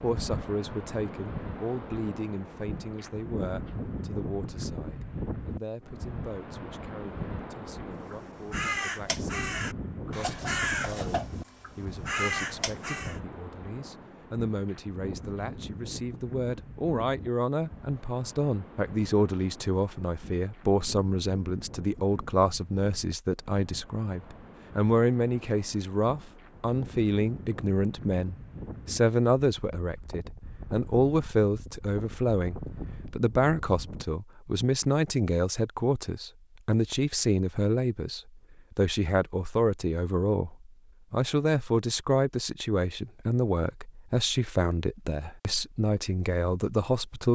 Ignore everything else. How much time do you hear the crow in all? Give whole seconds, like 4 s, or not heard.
5 s.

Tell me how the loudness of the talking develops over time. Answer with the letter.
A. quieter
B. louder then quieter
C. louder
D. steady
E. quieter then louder
C.